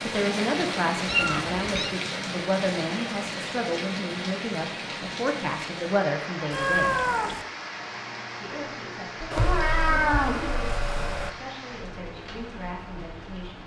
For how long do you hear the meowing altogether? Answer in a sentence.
The meowing can be heard for 4 seconds in total.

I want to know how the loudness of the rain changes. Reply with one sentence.
The volume of the rain goes down.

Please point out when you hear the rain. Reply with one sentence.
You can hear the rain from 0.0 to 13.6 s.